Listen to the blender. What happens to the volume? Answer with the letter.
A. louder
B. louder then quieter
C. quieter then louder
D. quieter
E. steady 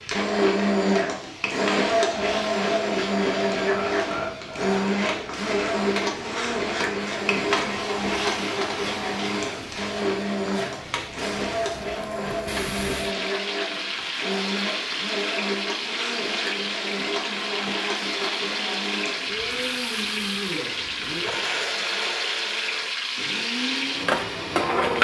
D.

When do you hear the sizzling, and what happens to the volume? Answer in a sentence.
You can hear the sizzling from 0.0 to 24.9 s, getting louder.